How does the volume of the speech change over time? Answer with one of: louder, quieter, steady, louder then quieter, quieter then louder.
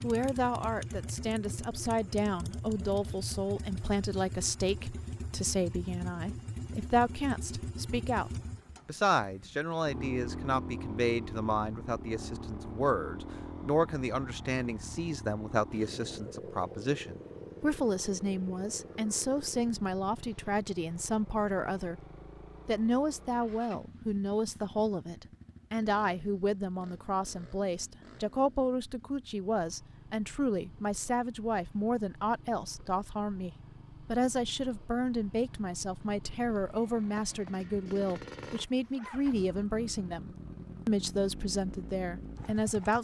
steady.